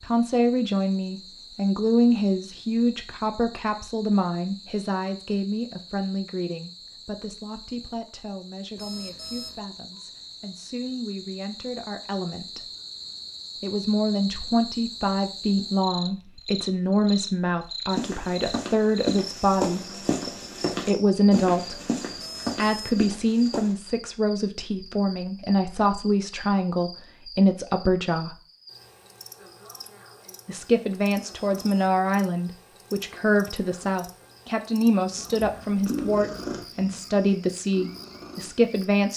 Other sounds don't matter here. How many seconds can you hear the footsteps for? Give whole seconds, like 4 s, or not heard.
6 s.